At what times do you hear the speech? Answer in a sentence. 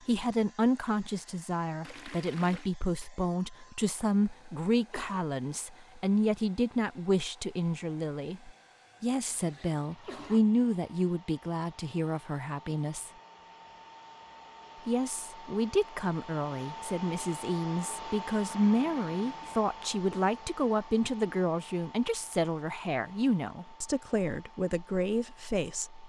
The speech can be heard from 0.1 to 13.1 s and from 14.8 to 26.0 s.